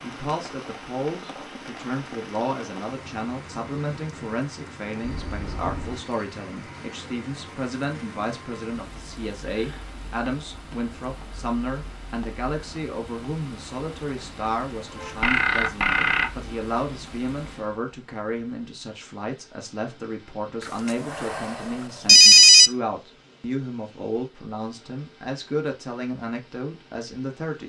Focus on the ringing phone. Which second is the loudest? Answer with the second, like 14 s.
22 s.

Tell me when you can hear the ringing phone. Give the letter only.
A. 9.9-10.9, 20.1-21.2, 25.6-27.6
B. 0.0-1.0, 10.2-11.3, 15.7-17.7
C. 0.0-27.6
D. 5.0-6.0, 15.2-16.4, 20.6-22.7
D.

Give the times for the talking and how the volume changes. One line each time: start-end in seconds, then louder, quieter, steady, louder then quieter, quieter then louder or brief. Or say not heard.
0.0-27.6 steady.